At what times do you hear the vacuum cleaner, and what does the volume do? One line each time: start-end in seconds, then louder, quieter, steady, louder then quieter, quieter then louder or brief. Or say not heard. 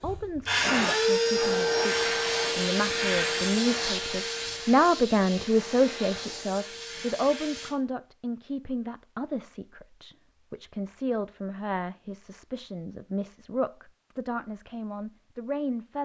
0.0-7.7 quieter.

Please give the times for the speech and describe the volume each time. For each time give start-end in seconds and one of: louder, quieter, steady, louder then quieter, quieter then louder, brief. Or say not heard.
0.0-16.0 louder then quieter.